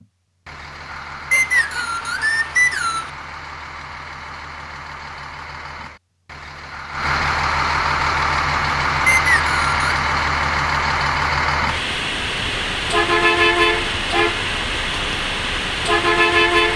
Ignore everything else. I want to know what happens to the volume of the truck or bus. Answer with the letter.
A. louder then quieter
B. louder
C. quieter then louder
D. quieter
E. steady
B.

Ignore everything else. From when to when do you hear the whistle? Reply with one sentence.
The whistle can be heard from 1.3 to 3.1 s and from 9.1 to 9.8 s.